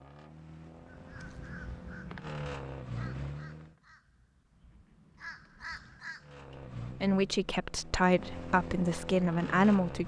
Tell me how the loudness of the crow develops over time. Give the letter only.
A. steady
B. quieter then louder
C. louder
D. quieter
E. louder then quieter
B.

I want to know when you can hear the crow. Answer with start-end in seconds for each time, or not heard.
0.8-6.3.